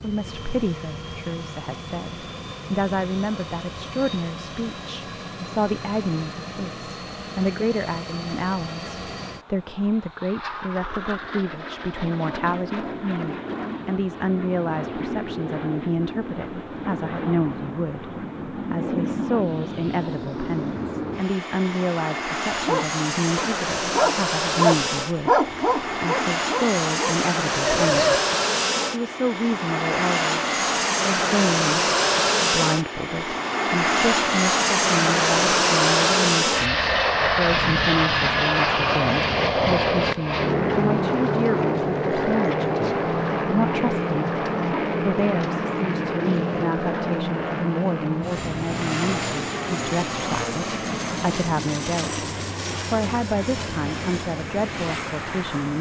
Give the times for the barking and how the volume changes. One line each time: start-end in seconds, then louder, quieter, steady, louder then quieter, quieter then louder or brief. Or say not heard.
22.6-28.2 louder then quieter.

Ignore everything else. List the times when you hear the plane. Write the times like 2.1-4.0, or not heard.
0.0-55.7.